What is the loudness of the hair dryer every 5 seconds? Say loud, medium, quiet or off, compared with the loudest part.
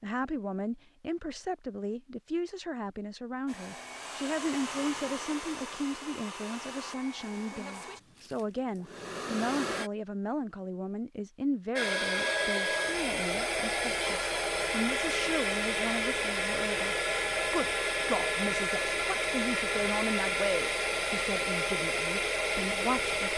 medium, medium, loud, loud, loud.